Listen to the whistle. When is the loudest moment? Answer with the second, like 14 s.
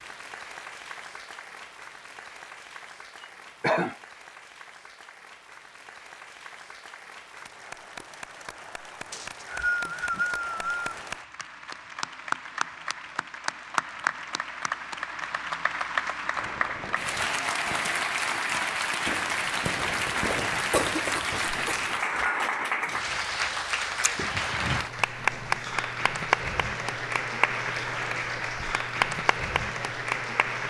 10 s.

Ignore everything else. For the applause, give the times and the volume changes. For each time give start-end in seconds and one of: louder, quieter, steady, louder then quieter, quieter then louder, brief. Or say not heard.
0.0-30.6 louder.